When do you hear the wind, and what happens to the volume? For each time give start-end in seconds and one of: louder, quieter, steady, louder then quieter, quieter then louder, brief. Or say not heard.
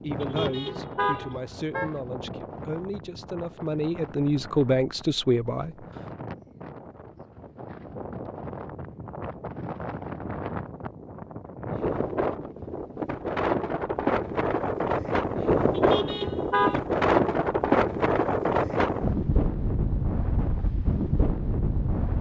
0.0-22.1 louder.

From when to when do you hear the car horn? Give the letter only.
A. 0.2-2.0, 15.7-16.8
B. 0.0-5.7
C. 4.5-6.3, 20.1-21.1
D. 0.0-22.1
A.